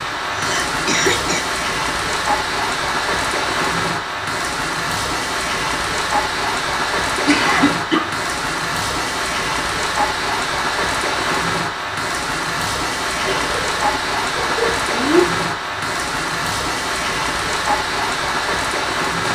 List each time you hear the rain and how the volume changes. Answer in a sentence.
The rain can be heard from 0.0 to 19.3 s, at a steady volume.